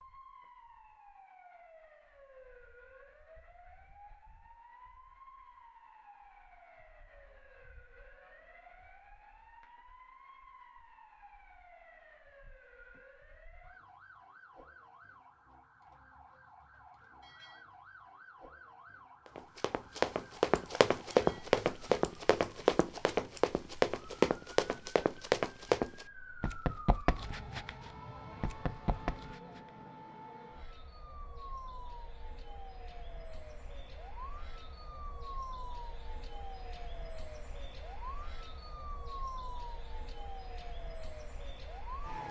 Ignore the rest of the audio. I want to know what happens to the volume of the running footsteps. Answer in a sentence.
The volume of the running footsteps goes down.